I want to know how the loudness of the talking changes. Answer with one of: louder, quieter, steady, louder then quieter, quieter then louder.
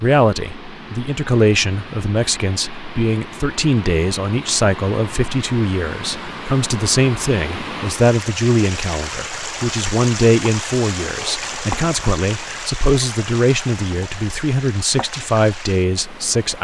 steady.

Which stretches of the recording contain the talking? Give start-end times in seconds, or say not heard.
0.0-16.5.